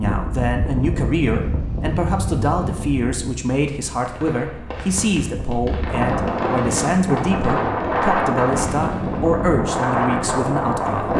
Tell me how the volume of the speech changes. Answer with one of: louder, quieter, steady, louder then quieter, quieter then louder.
steady.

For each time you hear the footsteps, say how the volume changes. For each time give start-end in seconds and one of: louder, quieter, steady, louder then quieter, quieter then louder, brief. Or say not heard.
not heard.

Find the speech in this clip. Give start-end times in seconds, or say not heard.
0.0-11.1.